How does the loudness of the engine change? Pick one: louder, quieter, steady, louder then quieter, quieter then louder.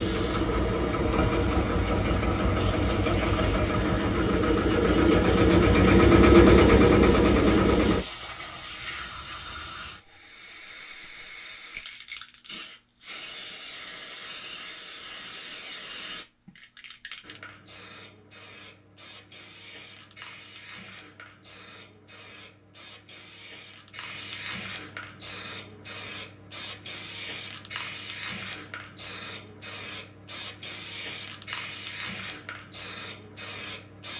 louder.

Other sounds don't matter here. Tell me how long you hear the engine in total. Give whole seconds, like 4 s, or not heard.
8 s.